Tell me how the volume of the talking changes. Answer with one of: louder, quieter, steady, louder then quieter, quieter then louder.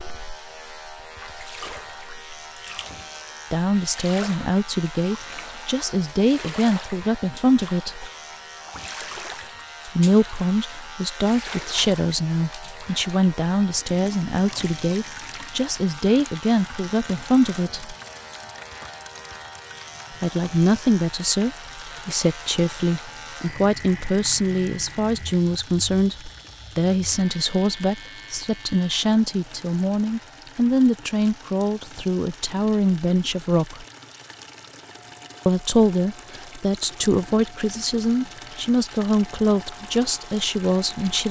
steady.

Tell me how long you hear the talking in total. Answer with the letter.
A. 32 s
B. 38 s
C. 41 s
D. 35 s
A.